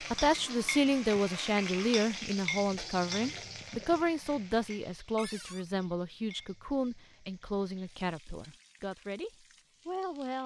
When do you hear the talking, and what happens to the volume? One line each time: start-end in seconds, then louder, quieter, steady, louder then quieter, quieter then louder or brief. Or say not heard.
0.1-10.4 quieter.